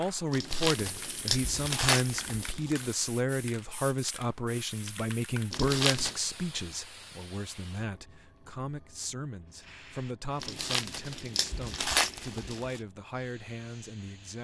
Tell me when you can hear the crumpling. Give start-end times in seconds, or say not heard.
0.3-2.9, 5.5-6.2, 10.4-12.8.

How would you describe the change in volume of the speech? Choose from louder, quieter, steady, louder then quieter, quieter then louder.
quieter.